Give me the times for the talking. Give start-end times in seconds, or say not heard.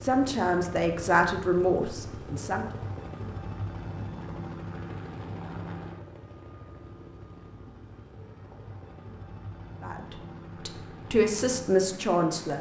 0.0-2.6, 9.8-12.5.